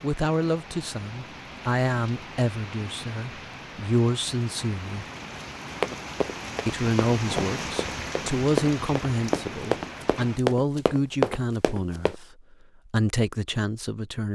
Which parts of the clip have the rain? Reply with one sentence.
You can hear the rain from 0.0 to 10.4 s.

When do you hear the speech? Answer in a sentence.
You can hear the speech from 0.0 to 5.0 s and from 6.7 to 14.2 s.